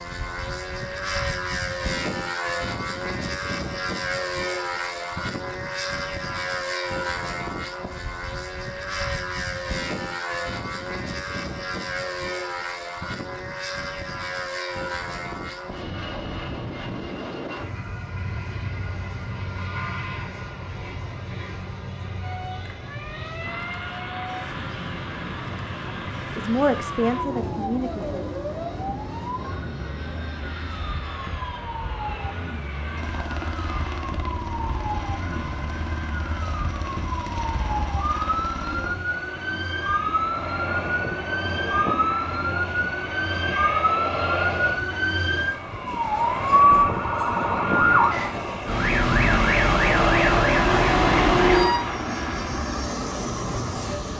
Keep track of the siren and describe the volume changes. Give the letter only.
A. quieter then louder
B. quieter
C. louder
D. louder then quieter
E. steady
C.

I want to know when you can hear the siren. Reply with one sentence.
You can hear the siren from 22.2 to 51.8 s.